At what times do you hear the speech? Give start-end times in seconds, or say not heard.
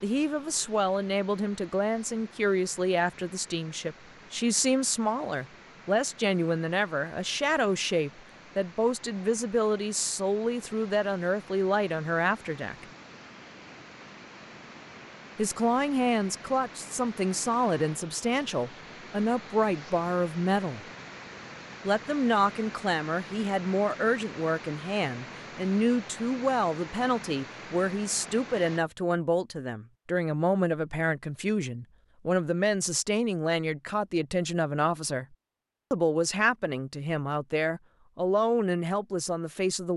0.0-12.8, 15.3-20.8, 21.9-35.2, 35.9-39.9.